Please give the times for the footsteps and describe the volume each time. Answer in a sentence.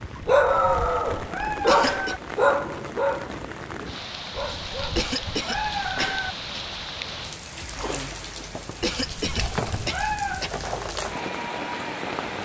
You can't hear the footsteps here.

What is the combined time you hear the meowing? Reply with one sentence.
The meowing can be heard for 6 seconds in total.